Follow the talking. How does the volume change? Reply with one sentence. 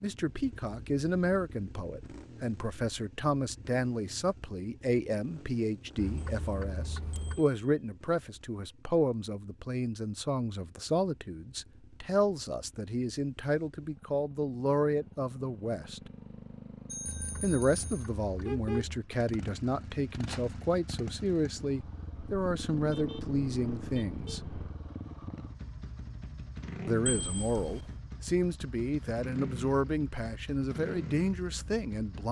The loudness of the talking stays about the same.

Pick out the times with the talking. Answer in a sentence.
You can hear the talking from 0.0 to 16.1 s, from 17.4 to 24.4 s and from 26.9 to 32.2 s.